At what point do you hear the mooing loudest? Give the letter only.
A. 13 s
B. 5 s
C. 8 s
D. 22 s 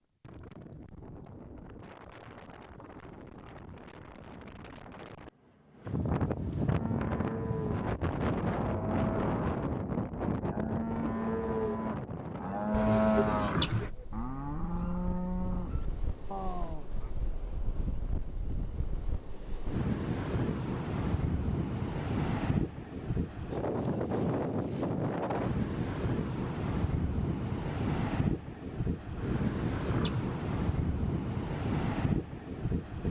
A.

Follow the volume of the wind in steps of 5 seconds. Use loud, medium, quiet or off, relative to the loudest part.
quiet, loud, medium, medium, loud, loud, loud.